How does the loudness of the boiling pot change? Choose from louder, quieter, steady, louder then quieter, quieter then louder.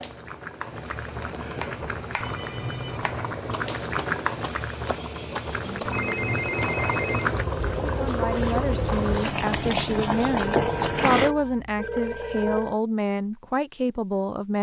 louder.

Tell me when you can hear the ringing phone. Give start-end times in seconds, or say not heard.
1.1-3.0, 5.6-7.3, 10.2-12.8.